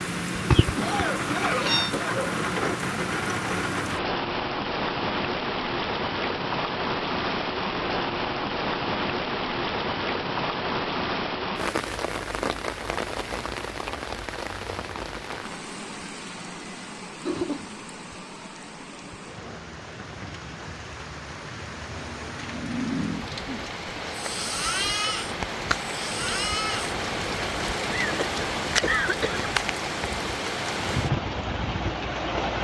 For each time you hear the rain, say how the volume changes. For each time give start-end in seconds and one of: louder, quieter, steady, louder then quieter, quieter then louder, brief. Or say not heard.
0.0-32.5 quieter then louder.